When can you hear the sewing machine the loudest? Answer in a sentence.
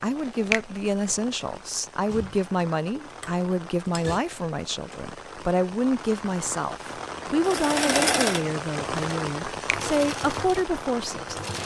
The loudest moment of the sewing machine is at 8 seconds.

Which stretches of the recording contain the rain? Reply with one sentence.
The rain can be heard from 0.0 to 11.6 s.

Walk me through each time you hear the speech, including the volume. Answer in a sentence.
You can hear the speech from 0.0 to 11.3 s, at a steady volume.